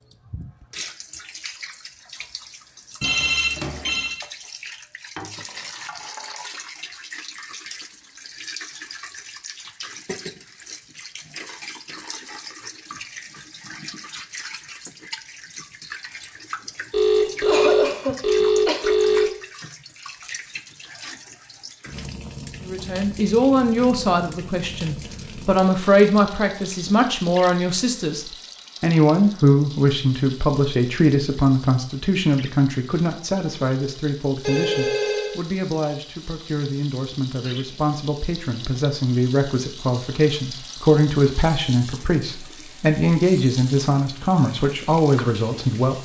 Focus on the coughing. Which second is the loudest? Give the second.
18 s.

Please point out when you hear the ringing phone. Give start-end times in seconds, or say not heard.
3.0-4.2, 16.9-19.2, 34.4-35.4.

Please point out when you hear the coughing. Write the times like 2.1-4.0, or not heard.
17.4-18.9.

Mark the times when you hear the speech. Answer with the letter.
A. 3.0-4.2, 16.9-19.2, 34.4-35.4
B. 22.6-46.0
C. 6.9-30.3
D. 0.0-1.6
B.